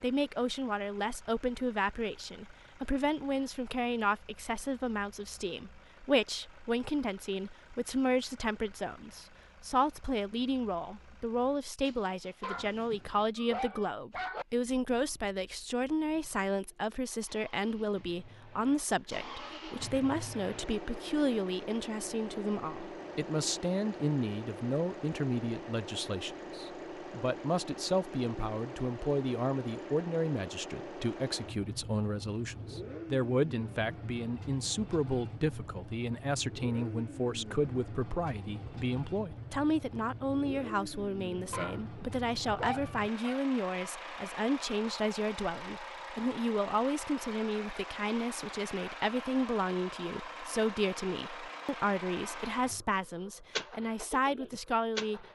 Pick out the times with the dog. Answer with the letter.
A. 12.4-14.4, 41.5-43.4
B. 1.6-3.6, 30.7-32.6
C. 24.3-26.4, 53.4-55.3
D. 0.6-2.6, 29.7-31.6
A.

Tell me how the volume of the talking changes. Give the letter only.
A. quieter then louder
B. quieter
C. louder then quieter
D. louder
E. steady
E.